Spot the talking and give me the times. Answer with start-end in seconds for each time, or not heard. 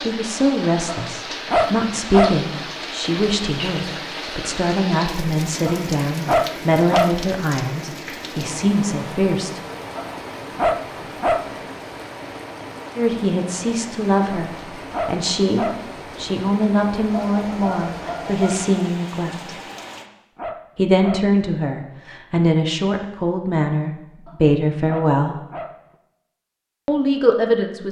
0.0-9.6, 12.9-19.6, 20.8-25.4, 26.9-27.8.